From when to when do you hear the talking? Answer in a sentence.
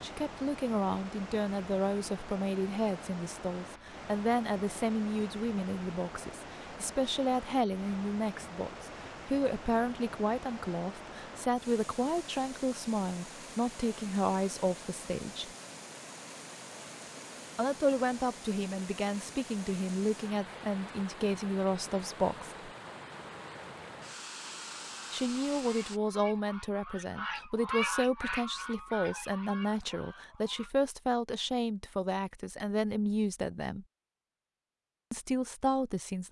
The talking can be heard from 0.0 to 15.5 s, from 17.6 to 22.7 s, from 25.1 to 33.9 s and from 35.1 to 36.2 s.